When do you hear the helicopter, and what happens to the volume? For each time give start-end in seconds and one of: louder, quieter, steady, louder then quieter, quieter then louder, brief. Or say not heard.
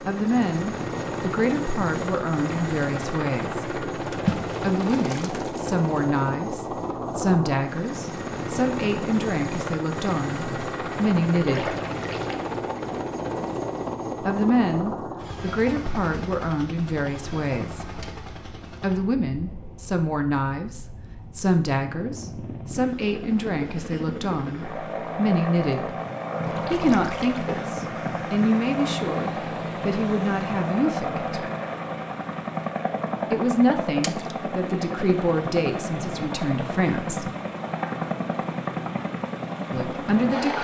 0.0-40.5 quieter then louder.